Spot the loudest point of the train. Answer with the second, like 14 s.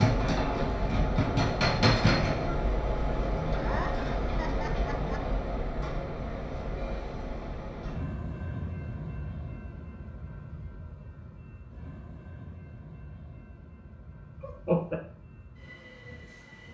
2 s.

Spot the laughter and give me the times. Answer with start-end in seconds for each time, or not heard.
3.5-5.2, 14.4-15.0.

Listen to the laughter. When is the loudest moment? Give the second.
15 s.